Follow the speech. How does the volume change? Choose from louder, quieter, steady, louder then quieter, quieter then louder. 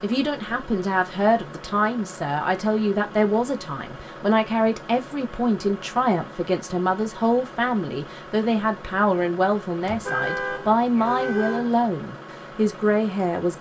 steady.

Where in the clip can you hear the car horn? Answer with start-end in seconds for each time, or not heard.
9.8-11.7.